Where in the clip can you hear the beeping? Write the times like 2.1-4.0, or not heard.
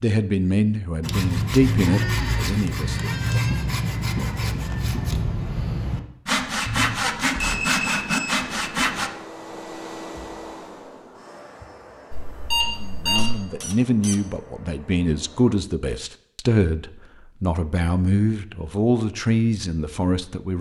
6.7-8.4, 12.1-13.4.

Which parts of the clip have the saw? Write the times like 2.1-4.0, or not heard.
1.0-9.1.